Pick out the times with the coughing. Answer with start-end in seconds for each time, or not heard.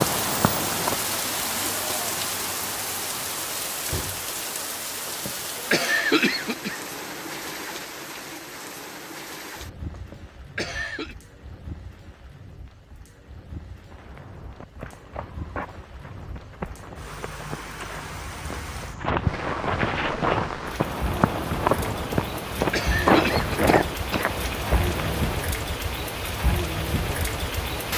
5.0-6.8, 9.9-11.2, 22.1-24.2.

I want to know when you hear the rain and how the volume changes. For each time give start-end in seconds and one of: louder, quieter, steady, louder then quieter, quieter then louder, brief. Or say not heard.
0.0-27.9 quieter then louder.